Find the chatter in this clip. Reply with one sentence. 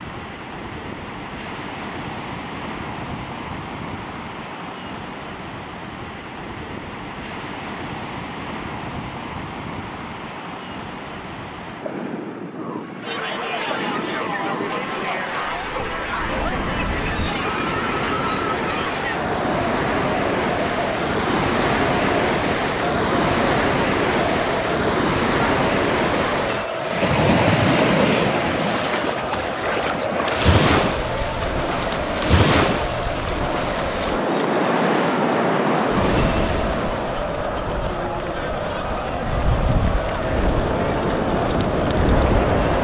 The chatter can be heard from 13.0 to 42.7 s.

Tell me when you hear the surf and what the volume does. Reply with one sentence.
The surf can be heard from 0.0 to 42.7 s, getting louder.